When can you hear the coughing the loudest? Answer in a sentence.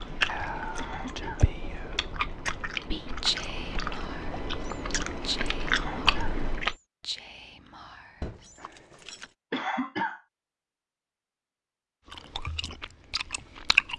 The loudest moment of the coughing is at 10 seconds.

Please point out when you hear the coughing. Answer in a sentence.
You can hear the coughing from 0.8 to 1.4 s, from 5.7 to 6.4 s and from 9.5 to 10.2 s.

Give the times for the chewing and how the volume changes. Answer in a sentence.
The chewing can be heard from 0.0 to 6.8 s, getting louder; and briefly from 12.1 to 13.9 s.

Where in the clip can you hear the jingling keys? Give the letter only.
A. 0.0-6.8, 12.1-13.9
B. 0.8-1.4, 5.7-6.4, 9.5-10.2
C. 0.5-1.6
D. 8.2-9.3
D.